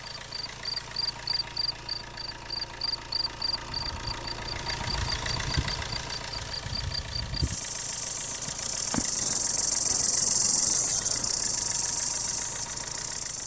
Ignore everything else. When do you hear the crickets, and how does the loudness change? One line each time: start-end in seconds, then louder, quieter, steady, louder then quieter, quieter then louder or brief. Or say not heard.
0.0-13.4 louder.